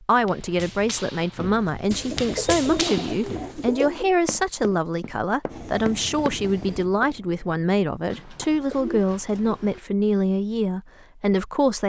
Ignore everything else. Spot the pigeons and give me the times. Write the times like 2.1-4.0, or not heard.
1.9-4.1, 8.1-9.8.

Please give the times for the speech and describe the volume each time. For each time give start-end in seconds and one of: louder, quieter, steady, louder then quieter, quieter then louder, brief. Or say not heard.
0.0-11.8 steady.